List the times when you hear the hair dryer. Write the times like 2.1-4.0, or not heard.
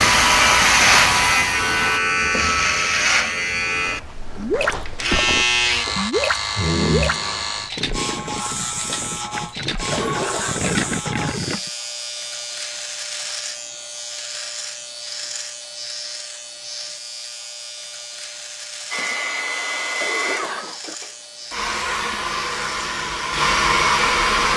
0.0-2.0, 18.9-24.5.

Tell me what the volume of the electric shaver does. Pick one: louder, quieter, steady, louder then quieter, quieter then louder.
quieter.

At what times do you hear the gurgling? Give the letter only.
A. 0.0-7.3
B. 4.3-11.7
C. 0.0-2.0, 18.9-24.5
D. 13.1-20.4
B.